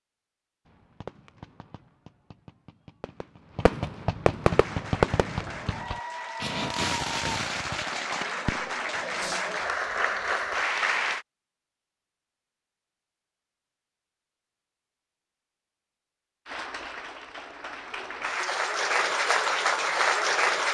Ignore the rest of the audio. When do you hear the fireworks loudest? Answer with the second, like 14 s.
5 s.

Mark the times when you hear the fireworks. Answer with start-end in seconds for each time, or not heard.
0.7-9.6.